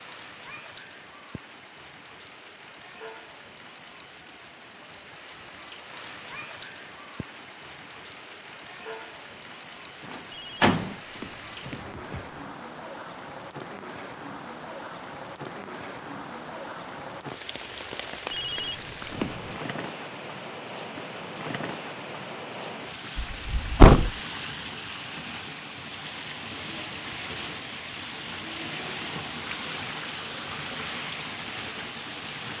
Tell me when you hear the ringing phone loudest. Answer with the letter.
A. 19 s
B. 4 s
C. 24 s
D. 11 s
A.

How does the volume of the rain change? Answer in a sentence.
The volume of the rain goes up.